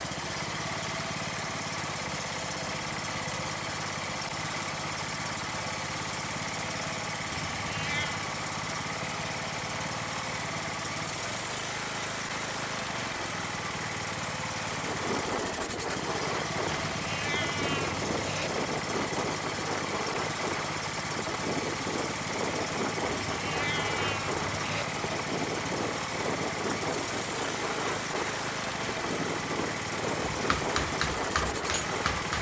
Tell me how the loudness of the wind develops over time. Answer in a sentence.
The loudness of the wind stays about the same.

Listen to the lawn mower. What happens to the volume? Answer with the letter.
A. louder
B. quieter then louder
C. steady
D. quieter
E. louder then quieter
C.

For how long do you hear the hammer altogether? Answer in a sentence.
The hammer can be heard for 2 seconds in total.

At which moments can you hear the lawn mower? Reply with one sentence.
The lawn mower can be heard from 0.0 to 32.3 s.